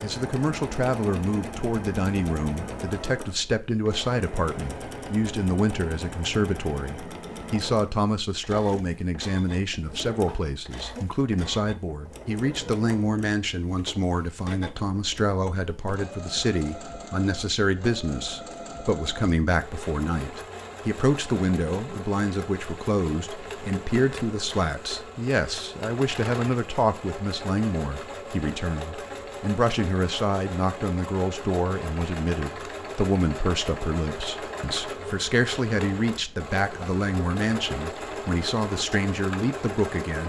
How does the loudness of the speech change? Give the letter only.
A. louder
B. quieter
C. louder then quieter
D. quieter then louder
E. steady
E.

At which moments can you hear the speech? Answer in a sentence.
You can hear the speech from 0.0 to 40.2 s.